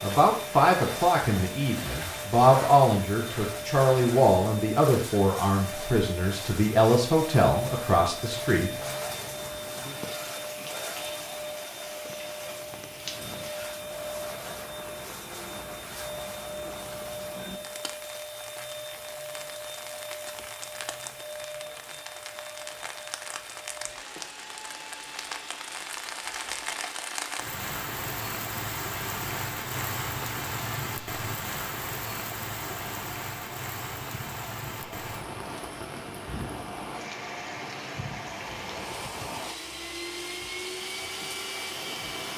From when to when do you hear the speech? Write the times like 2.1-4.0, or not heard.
0.0-8.7.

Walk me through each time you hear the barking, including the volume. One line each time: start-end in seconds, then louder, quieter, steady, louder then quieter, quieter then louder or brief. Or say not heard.
not heard.